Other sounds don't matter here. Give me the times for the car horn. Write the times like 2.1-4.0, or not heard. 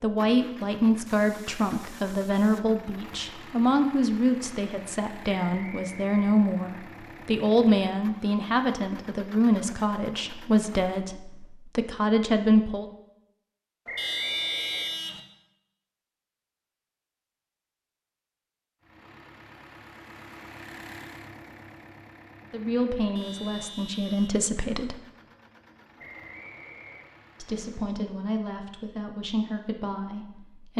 1.1-2.7, 13.9-15.2, 23.1-24.4.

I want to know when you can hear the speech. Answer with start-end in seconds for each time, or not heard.
0.0-12.9, 22.5-24.9, 27.4-30.7.